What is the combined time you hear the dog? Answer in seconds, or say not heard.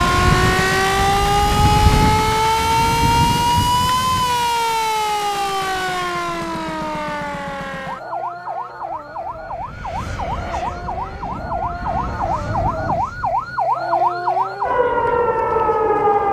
not heard.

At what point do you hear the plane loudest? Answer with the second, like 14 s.
2 s.